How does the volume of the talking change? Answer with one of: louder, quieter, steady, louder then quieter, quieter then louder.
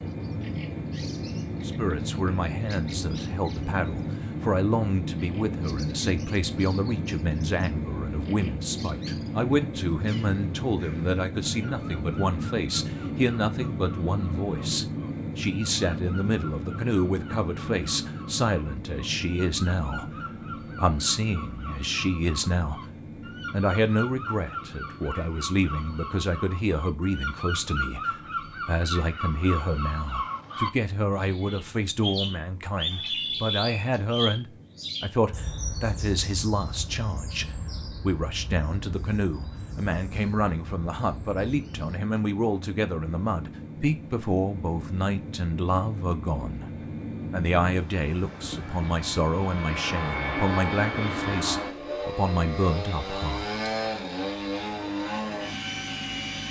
steady.